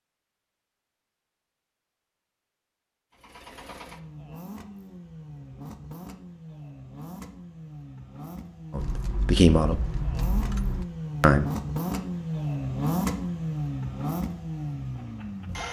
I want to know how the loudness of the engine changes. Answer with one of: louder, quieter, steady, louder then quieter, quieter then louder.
louder.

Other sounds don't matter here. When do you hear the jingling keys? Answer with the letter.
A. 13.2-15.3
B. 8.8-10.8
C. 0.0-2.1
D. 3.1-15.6
B.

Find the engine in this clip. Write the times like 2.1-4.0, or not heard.
3.1-15.6.